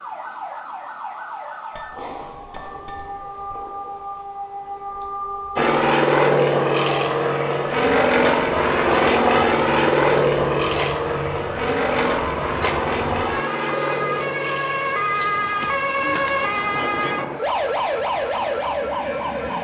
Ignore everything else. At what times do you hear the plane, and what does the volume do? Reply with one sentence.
You can hear the plane from 5.5 to 19.5 s, getting quieter.